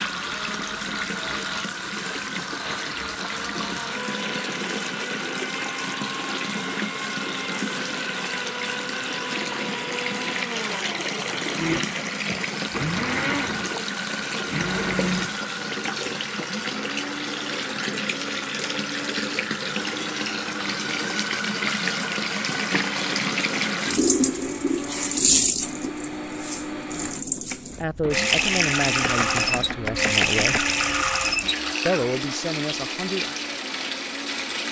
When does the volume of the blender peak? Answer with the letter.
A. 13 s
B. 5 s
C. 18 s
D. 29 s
A.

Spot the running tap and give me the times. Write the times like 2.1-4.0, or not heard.
0.0-34.6.